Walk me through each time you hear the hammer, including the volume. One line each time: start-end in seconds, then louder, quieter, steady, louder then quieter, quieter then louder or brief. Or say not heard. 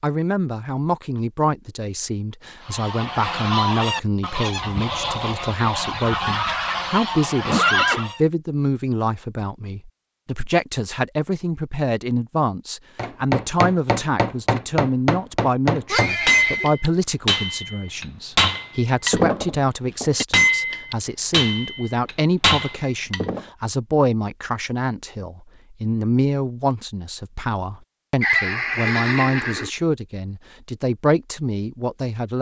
12.9-23.4 steady.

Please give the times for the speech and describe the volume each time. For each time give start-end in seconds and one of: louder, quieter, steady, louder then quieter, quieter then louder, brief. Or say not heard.
0.0-32.3 steady.